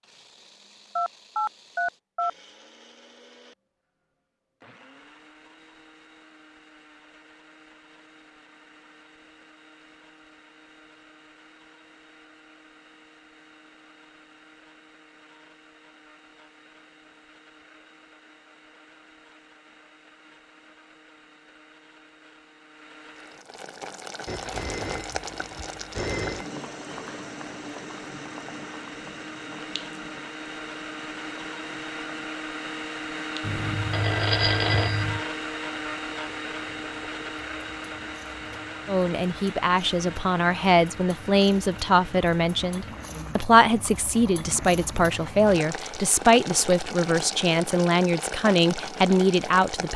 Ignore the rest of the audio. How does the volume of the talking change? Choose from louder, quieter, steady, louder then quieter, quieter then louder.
steady.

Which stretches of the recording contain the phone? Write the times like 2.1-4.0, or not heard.
0.9-2.3, 24.2-26.4, 33.5-35.2.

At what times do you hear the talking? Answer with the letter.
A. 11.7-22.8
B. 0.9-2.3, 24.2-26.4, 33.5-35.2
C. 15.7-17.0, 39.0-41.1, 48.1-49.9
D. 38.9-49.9
D.